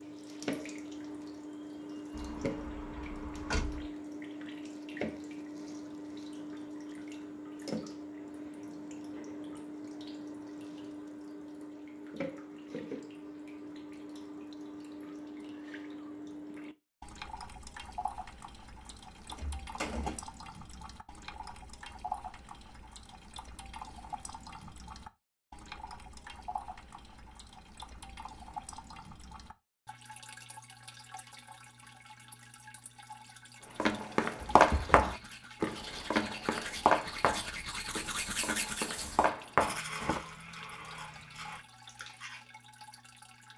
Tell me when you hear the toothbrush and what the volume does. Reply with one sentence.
You can hear the toothbrush from 34.6 to 42.4 s, getting louder then quieter.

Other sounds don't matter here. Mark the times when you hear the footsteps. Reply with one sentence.
The footsteps can be heard from 33.6 to 40.2 s.